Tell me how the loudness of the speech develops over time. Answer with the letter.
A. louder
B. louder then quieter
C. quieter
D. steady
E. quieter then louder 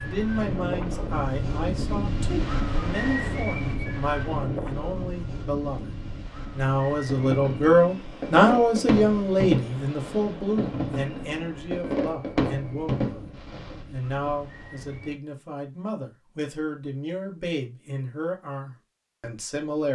B.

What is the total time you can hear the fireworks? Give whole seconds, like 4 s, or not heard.
7 s.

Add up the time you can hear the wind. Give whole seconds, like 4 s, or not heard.
15 s.